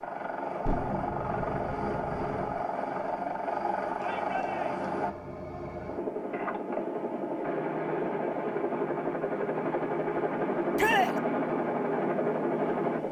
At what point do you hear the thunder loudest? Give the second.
1 s.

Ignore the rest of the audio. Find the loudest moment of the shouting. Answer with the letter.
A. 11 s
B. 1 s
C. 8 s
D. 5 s
A.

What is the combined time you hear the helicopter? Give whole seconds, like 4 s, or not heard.
13 s.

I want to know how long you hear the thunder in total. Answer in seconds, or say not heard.
2 s.